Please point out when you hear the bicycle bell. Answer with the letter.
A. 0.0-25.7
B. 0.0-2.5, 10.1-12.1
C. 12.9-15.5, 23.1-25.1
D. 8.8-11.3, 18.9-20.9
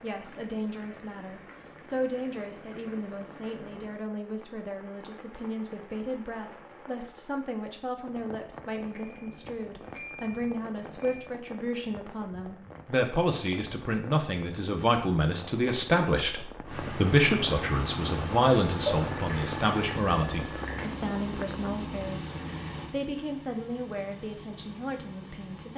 D.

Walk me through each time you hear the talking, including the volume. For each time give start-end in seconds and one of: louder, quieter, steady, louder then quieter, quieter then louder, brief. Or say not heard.
0.0-25.7 louder then quieter.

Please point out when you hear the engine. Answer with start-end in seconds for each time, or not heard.
16.6-25.7.